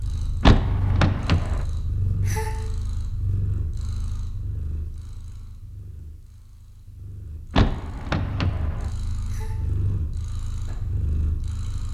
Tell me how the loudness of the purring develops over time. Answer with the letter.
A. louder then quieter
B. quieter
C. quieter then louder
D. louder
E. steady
C.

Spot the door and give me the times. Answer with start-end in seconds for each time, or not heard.
0.4-1.6, 7.5-8.9.